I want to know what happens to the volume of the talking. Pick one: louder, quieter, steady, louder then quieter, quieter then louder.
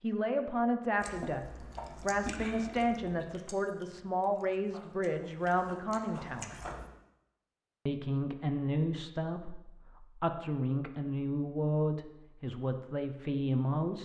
steady.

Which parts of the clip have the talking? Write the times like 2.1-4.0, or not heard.
0.0-6.6, 7.8-14.0.